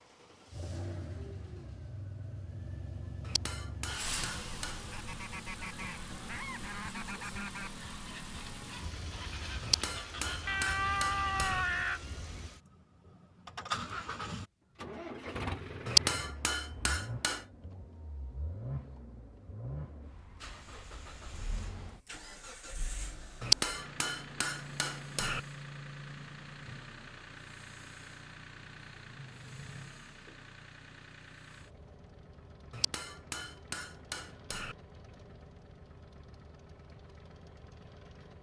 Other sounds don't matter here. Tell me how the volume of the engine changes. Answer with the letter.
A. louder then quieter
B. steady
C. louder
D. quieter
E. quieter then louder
D.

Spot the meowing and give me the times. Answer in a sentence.
You can hear the meowing from 10.4 to 12.0 s.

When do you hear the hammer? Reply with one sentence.
The hammer can be heard from 3.2 to 4.8 s, from 9.6 to 11.7 s, from 15.8 to 17.4 s, from 23.4 to 25.4 s and from 32.7 to 34.8 s.